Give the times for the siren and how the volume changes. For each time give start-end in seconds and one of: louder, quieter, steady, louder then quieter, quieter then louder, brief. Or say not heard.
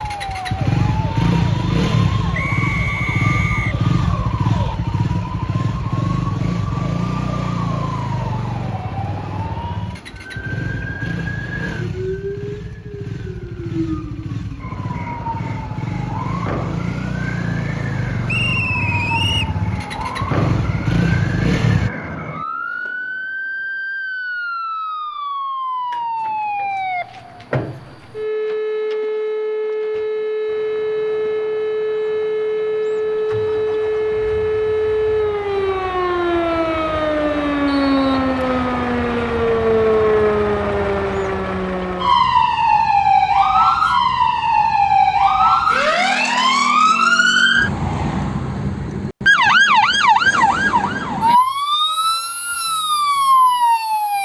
0.0-54.1 louder.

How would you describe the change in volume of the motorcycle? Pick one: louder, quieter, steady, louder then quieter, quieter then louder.
quieter then louder.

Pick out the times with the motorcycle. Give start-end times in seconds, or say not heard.
0.0-21.9.